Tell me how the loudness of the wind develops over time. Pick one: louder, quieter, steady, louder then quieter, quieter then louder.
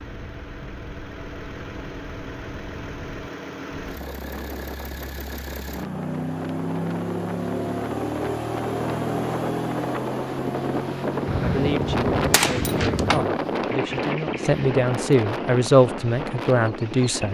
louder.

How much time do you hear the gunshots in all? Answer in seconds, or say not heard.
2 s.